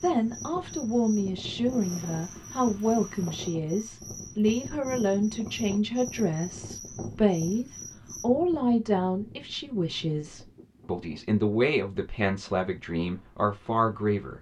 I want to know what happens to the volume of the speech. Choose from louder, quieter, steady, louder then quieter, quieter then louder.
steady.